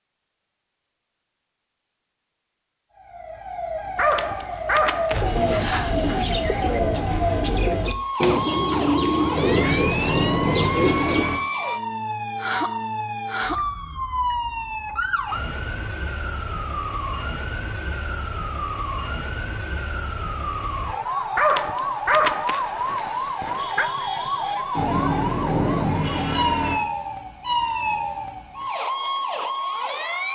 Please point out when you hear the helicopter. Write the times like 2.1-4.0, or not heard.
not heard.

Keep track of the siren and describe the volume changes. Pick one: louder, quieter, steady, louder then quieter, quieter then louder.
steady.